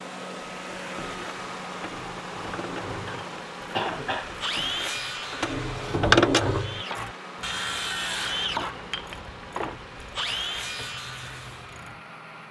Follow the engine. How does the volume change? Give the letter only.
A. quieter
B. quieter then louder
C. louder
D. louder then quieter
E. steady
A.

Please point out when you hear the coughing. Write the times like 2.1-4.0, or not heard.
3.0-4.3.